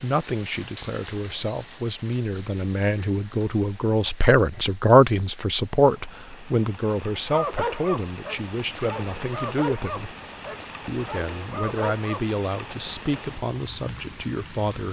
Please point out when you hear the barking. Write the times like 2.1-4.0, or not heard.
7.2-12.3.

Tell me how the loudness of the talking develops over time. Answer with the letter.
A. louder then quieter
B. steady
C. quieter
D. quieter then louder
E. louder
A.